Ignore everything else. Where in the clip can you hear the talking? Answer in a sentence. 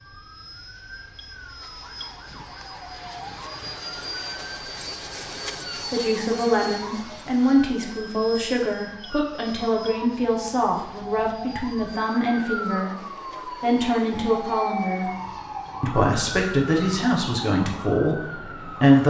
You can hear the talking from 5.9 to 15.1 s and from 15.8 to 19.0 s.